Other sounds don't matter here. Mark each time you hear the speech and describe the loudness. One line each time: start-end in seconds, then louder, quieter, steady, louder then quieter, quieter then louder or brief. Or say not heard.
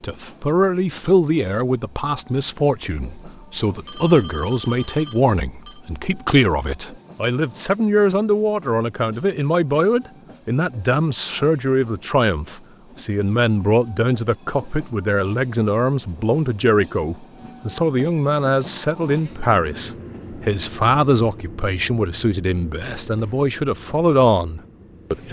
0.0-25.2 steady.